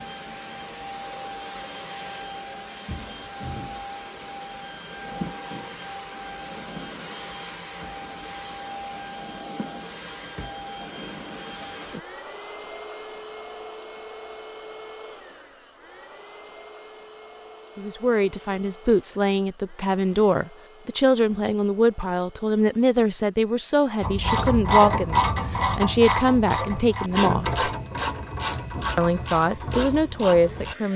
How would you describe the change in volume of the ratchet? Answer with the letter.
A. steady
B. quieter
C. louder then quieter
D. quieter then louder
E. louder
B.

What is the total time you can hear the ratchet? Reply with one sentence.
You can hear the ratchet for 7 seconds altogether.